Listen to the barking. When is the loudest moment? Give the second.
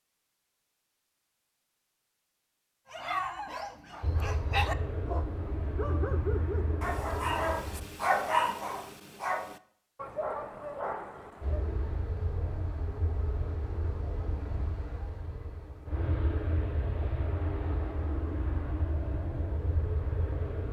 8 s.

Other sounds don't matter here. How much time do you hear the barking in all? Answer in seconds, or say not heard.
9 s.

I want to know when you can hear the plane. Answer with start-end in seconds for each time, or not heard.
4.0-7.9, 11.4-20.6.